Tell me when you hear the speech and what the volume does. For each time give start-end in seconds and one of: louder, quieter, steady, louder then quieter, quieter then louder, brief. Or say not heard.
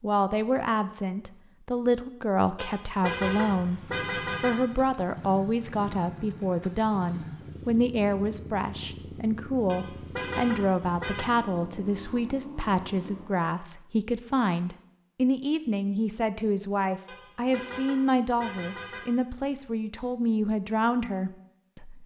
0.0-22.0 steady.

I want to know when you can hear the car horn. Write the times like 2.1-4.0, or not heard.
2.5-4.5, 9.7-11.2, 17.1-19.0.